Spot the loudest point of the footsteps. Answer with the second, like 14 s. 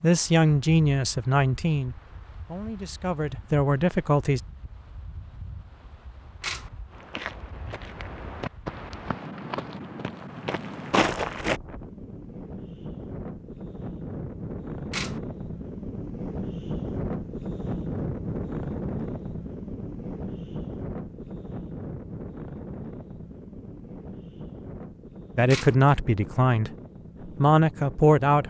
11 s.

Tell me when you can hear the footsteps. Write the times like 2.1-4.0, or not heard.
6.9-11.6.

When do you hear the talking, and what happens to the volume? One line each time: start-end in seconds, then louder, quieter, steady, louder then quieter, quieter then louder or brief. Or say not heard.
0.0-4.4 quieter then louder
25.4-26.7 brief
27.4-28.4 brief.